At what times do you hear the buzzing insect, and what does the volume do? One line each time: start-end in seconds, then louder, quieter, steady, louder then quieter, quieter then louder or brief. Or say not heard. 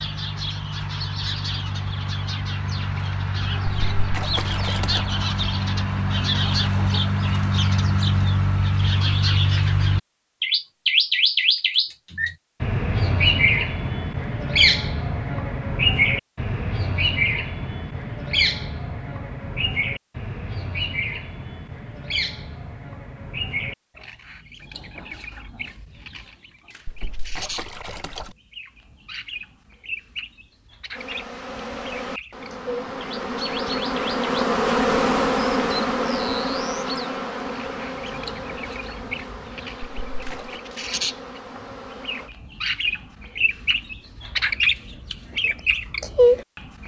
30.9-42.4 louder then quieter.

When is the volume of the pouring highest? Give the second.
4 s.